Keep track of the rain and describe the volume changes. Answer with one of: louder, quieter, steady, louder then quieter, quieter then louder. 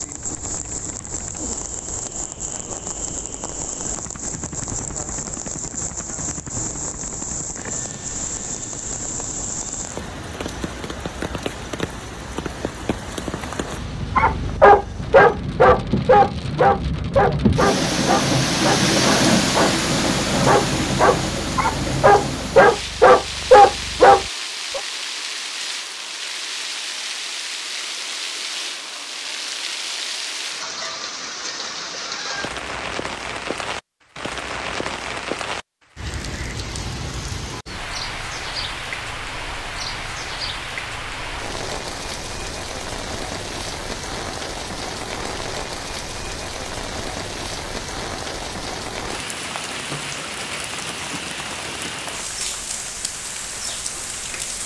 louder then quieter.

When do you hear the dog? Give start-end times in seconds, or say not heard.
13.8-24.8.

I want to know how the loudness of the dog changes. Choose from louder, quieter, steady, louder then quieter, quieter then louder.
quieter then louder.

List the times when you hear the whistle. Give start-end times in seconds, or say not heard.
not heard.